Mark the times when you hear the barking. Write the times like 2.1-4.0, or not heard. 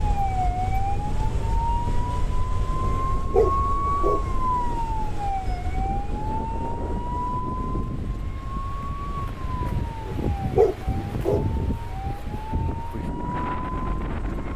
2.9-4.2, 10.1-11.4.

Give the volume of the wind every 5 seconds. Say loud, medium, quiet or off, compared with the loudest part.
medium, loud, loud.